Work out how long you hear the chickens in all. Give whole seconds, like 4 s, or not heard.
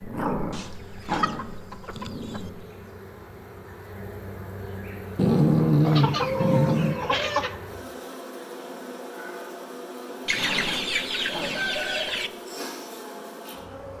6 s.